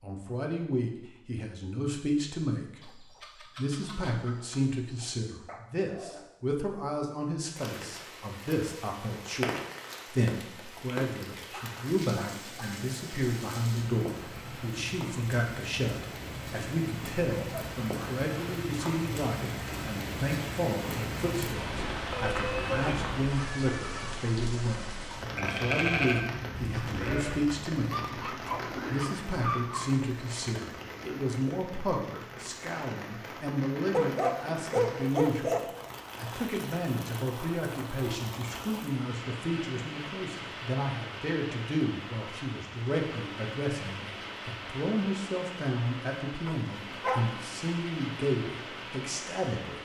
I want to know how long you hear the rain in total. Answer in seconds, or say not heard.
42 s.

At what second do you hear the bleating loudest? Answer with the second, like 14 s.
26 s.